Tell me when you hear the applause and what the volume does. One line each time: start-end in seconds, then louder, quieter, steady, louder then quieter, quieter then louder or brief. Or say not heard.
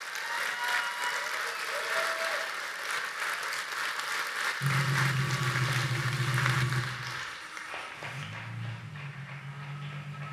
0.0-10.2 quieter.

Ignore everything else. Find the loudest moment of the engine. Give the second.
5 s.